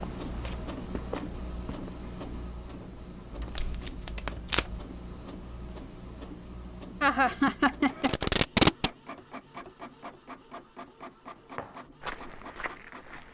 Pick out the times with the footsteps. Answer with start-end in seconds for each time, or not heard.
0.0-1.9, 11.6-13.2.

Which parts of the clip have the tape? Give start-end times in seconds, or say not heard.
3.4-4.8, 8.0-8.9.